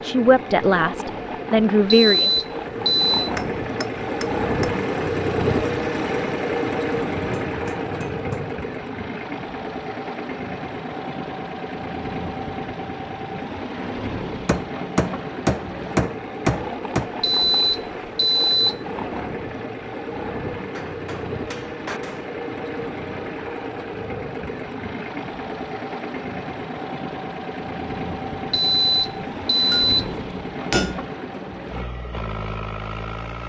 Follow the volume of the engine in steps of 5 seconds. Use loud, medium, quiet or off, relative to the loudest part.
loud, loud, medium, medium, medium, medium, medium.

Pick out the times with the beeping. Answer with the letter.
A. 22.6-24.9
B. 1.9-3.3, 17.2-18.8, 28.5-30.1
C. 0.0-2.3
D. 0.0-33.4
B.